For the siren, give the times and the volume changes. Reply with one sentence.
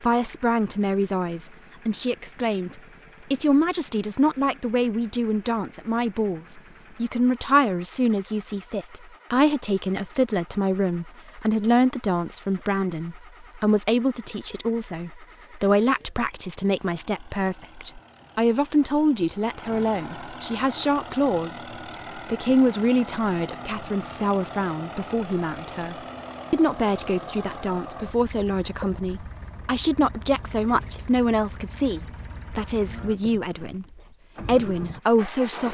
You can't hear the siren here.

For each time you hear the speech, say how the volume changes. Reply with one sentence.
You can hear the speech from 0.0 to 33.9 s, at a steady volume; and briefly from 34.5 to 35.6 s.